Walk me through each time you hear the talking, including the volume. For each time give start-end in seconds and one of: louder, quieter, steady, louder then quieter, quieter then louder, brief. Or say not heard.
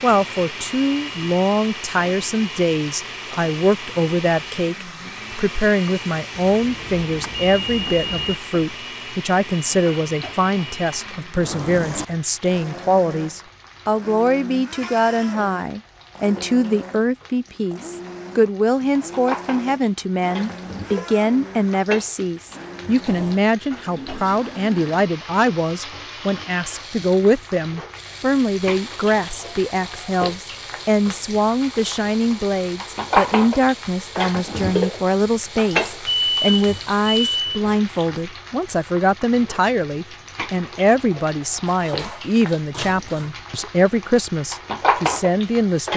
0.0-45.9 steady.